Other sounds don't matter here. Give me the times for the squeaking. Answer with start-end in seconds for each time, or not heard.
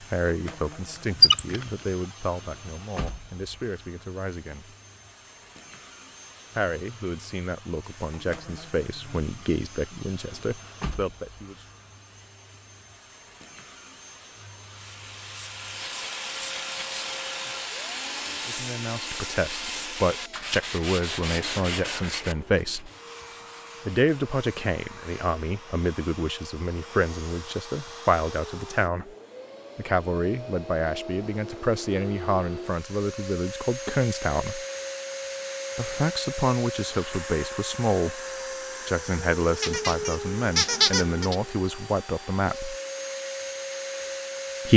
1.2-1.6, 15.8-17.5, 39.6-41.4.